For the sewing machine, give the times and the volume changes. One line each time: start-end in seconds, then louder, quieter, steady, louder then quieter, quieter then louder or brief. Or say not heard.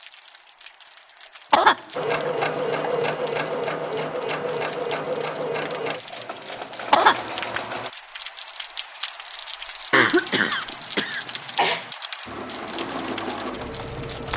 1.9-7.9 quieter
12.2-14.3 brief.